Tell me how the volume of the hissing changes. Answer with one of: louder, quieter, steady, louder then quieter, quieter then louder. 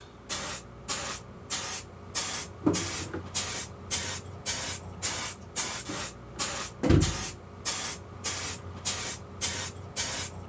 steady.